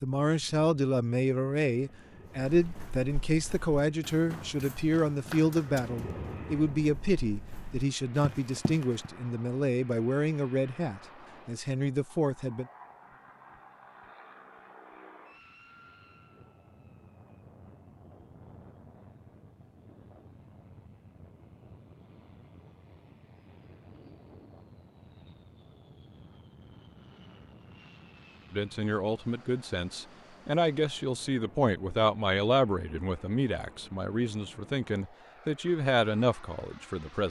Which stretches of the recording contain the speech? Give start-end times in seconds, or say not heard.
0.0-12.7, 28.5-37.2.